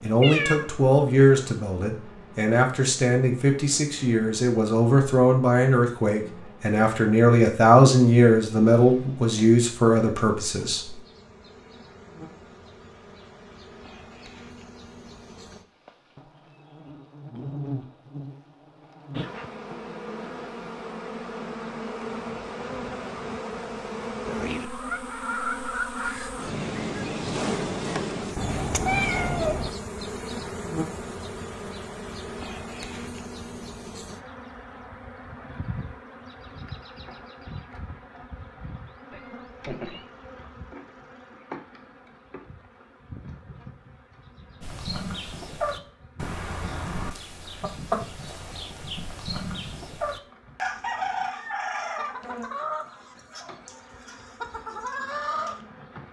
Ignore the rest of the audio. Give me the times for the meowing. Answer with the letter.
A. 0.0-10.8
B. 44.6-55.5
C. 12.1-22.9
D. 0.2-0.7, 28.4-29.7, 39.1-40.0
D.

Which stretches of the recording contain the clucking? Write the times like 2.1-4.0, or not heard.
44.6-55.5.